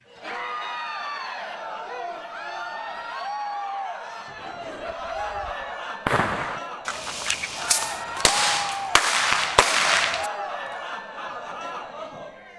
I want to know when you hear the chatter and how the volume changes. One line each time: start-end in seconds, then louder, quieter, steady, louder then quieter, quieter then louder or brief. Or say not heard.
0.1-12.5 steady.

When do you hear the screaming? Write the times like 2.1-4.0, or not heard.
not heard.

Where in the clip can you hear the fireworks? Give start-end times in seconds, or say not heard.
4.3-10.3.